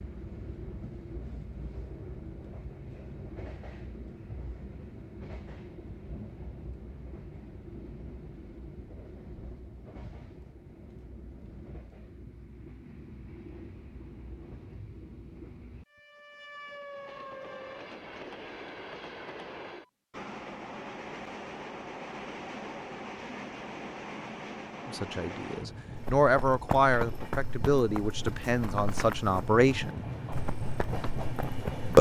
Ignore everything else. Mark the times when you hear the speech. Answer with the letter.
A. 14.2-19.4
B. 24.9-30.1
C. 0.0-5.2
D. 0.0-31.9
B.